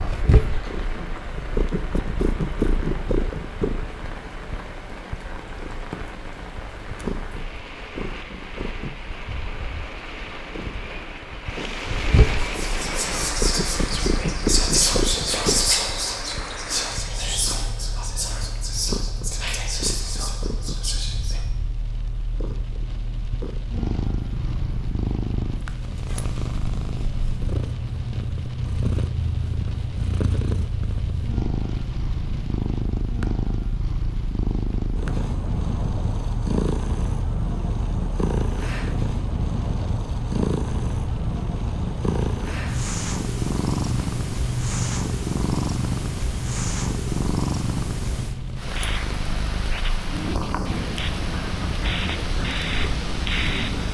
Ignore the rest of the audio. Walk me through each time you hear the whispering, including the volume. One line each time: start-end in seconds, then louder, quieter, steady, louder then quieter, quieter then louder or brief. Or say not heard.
12.4-21.4 louder then quieter.